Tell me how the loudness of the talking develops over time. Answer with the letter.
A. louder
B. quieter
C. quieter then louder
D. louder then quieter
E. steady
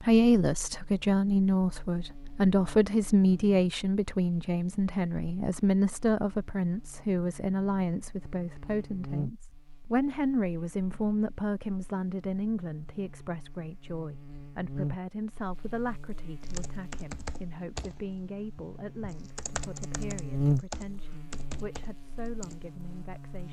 B.